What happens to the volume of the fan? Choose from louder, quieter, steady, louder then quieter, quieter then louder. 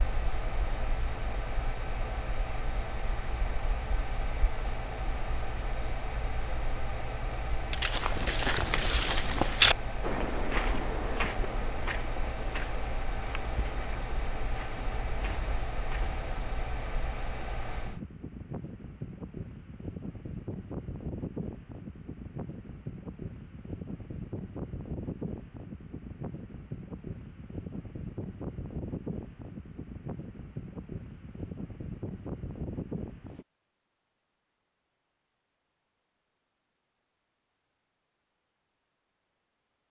steady.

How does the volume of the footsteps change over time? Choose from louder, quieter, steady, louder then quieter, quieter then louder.
quieter.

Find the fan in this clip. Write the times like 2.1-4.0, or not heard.
0.0-33.5.